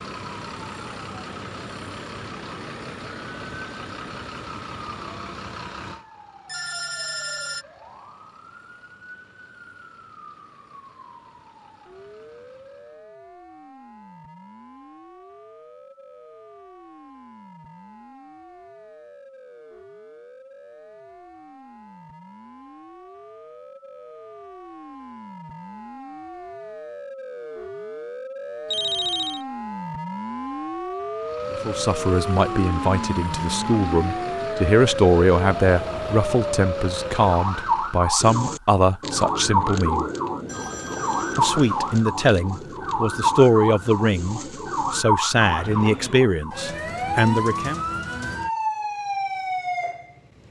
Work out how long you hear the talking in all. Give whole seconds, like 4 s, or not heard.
15 s.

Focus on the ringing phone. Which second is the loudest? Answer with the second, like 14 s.
29 s.